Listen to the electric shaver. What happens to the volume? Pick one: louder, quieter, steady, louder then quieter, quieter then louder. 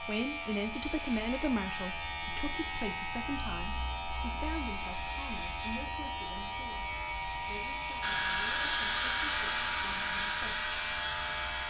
steady.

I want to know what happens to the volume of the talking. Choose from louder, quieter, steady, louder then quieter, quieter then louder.
quieter.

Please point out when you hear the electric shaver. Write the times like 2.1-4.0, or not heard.
0.0-11.6.